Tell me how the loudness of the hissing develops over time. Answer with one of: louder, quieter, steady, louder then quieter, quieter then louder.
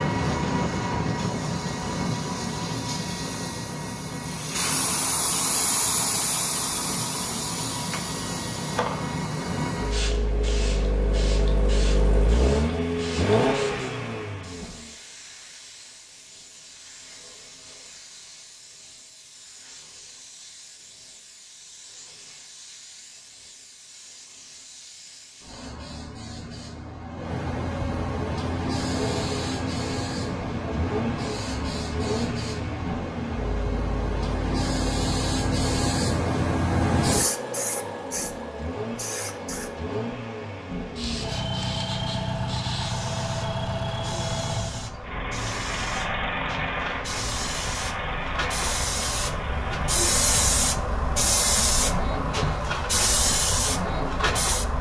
quieter then louder.